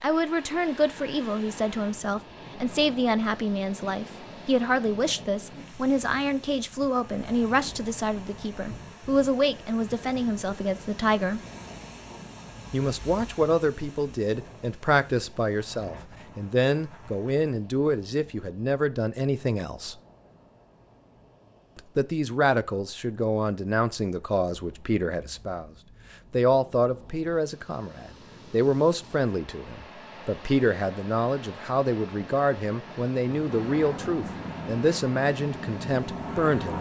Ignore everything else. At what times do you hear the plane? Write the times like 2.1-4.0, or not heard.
33.2-36.7.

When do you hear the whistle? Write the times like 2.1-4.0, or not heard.
not heard.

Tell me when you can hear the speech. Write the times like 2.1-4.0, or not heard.
0.0-11.4, 12.7-19.9, 21.8-25.7, 26.3-36.7.